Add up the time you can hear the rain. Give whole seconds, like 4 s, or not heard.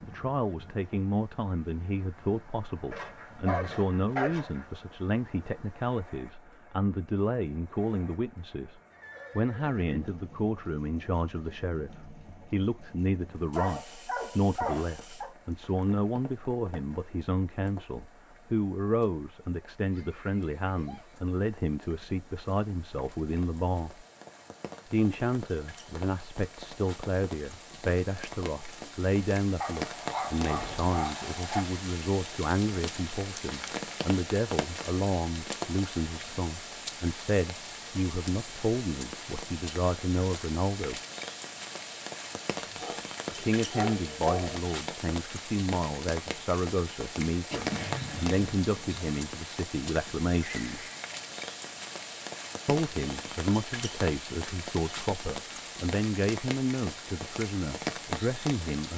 59 s.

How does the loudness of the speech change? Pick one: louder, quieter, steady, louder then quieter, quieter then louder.
steady.